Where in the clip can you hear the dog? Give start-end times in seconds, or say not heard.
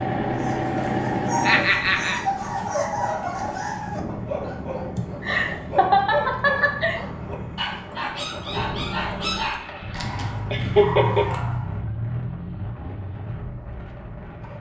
0.3-11.8.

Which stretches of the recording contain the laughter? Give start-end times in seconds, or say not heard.
1.4-2.2, 5.0-7.0, 10.1-11.2.